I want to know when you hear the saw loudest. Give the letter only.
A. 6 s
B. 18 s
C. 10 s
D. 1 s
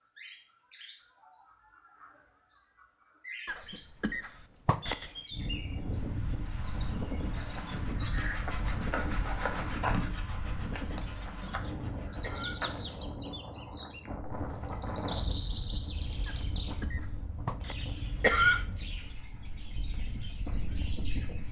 C.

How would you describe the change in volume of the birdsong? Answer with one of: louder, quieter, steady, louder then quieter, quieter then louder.
louder then quieter.